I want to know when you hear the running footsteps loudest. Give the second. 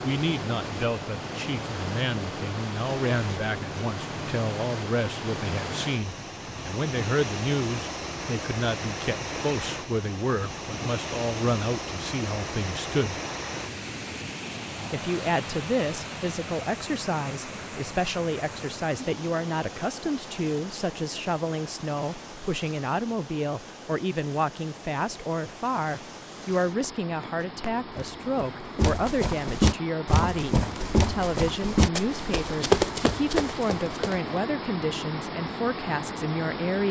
33 s.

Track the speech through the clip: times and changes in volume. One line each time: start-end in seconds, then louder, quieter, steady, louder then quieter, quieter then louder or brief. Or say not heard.
0.0-13.2 steady
14.9-36.8 steady.